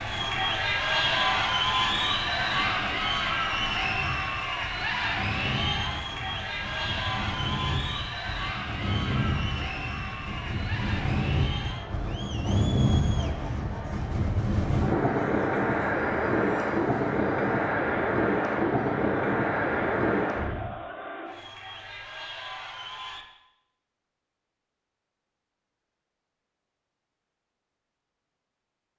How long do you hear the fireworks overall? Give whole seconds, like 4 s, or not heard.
not heard.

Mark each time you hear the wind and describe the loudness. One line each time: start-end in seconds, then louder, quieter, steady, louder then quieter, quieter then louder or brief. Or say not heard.
0.0-20.8 louder.